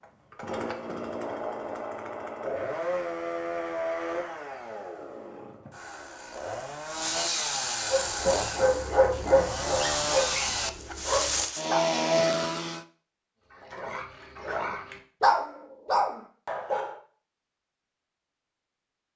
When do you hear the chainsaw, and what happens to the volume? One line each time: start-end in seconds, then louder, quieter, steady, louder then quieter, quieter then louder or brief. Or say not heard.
0.0-12.8 louder.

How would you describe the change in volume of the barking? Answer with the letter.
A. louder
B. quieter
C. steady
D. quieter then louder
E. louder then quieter
D.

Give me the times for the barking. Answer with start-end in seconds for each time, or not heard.
7.8-11.9, 13.5-16.9.